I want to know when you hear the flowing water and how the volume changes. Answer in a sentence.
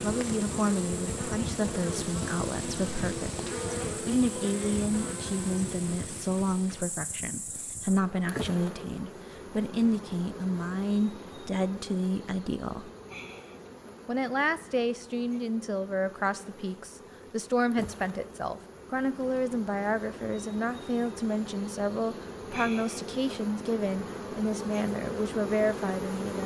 You can't hear the flowing water here.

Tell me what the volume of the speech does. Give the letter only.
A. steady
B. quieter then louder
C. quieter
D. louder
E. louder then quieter
A.